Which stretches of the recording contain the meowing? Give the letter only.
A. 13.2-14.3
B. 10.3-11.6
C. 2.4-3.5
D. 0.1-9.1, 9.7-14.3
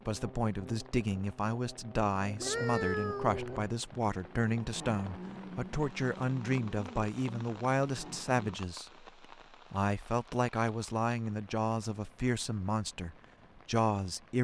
C.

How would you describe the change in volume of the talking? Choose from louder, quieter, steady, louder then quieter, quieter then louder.
steady.